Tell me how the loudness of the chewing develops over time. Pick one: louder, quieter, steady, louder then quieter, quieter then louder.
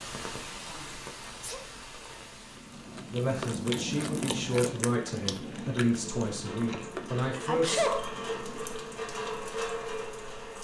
quieter.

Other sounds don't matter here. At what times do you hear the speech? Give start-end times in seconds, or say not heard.
3.1-7.9.